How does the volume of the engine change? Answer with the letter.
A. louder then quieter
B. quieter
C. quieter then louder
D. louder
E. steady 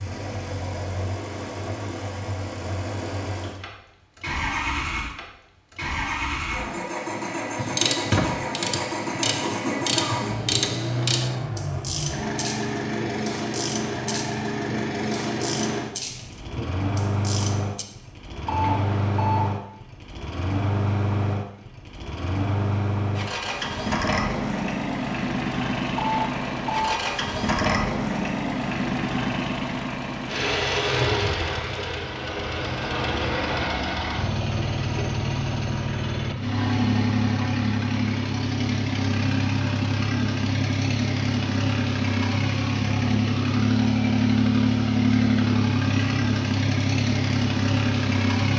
D.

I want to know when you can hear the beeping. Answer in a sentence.
You can hear the beeping from 18.4 to 19.6 s and from 25.9 to 27.1 s.